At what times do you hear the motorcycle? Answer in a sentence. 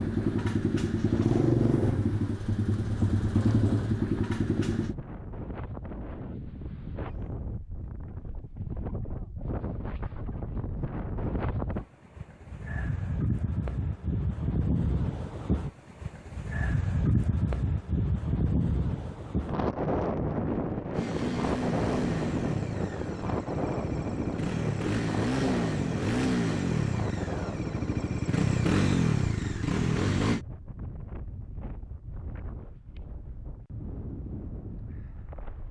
The motorcycle can be heard from 0.0 to 5.0 s and from 20.9 to 30.4 s.